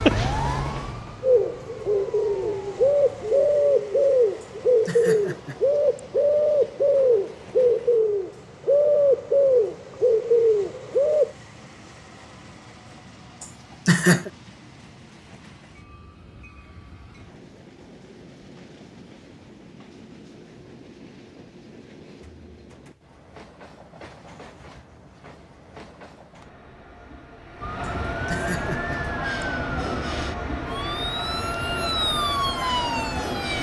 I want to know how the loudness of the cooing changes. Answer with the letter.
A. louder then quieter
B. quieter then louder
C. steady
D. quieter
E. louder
C.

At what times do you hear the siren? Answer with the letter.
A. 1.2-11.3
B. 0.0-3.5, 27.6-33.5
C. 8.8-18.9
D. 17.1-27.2
B.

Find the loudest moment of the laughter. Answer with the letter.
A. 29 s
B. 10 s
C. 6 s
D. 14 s
D.